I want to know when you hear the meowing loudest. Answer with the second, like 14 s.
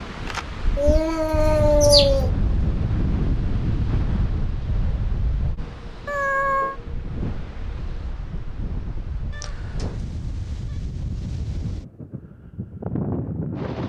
2 s.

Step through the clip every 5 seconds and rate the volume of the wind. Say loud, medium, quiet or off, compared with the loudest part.
loud, medium, loud.